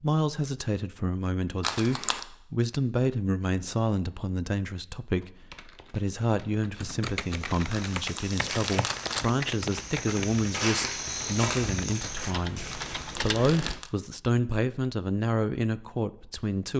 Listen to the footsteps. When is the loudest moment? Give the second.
11 s.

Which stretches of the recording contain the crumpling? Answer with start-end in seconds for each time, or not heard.
1.6-2.2, 7.7-9.2, 12.7-13.9.